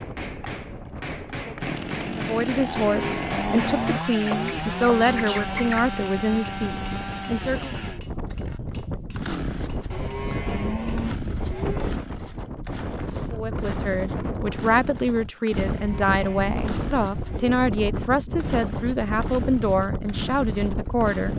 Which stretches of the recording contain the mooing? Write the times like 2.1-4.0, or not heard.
2.8-4.6, 9.9-11.9, 15.7-17.7.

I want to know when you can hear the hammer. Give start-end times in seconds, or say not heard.
0.0-11.1.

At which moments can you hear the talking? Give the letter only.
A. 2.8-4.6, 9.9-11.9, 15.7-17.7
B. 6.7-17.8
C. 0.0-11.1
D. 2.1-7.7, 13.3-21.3
D.